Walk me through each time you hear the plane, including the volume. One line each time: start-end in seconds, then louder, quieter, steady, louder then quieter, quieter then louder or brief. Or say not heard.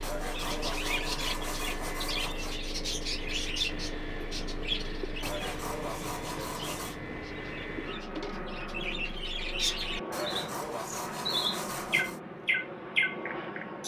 0.0-13.8 steady.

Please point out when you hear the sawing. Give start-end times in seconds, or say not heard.
0.0-2.6, 5.2-7.0, 10.1-12.2.